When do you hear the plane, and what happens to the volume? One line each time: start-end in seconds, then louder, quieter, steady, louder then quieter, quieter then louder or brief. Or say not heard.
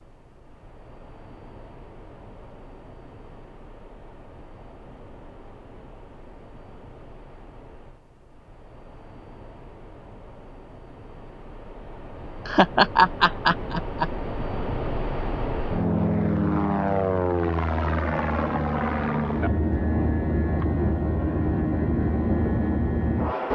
0.0-23.4 louder.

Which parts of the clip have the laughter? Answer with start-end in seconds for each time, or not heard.
12.4-14.1.